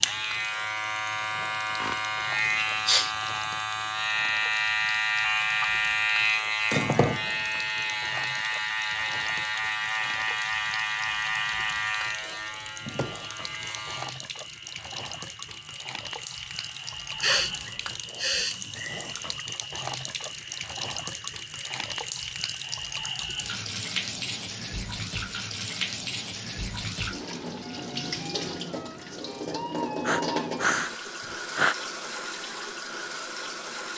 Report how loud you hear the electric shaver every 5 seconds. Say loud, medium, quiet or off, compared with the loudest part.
loud, loud, medium, quiet, quiet, off, off.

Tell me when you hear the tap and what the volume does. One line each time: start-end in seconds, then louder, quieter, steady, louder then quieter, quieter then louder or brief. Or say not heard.
0.0-33.9 louder.